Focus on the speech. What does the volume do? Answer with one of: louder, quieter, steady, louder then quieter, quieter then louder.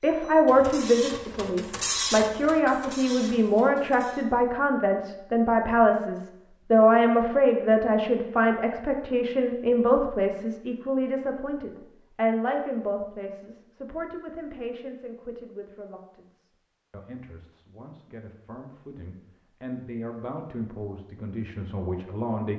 quieter.